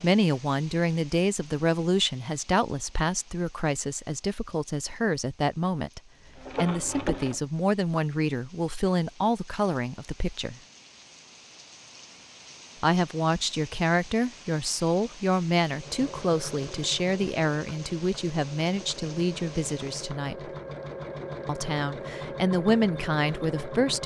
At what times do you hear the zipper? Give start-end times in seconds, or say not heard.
not heard.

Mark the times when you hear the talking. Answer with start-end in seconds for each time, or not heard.
0.0-10.6, 12.8-20.4, 21.4-24.0.